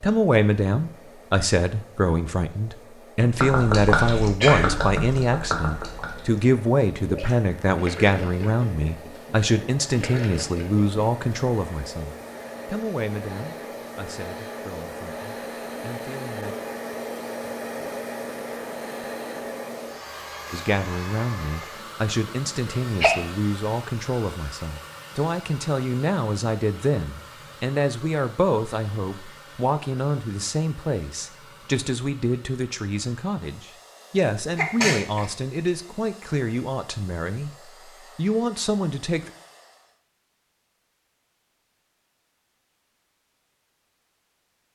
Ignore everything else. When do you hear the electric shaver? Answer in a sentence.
You can't hear the electric shaver here.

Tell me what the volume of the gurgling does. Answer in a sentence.
The loudness of the gurgling goes down.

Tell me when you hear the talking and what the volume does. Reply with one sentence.
The talking can be heard from 0.0 to 16.6 s, getting quieter; and from 20.5 to 39.3 s, at a steady volume.